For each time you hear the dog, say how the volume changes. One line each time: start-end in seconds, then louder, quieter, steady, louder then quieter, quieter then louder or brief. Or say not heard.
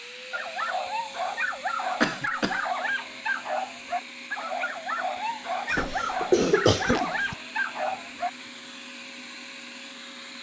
0.3-8.3 steady.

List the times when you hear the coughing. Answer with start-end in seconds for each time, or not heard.
2.0-2.6, 5.7-7.3.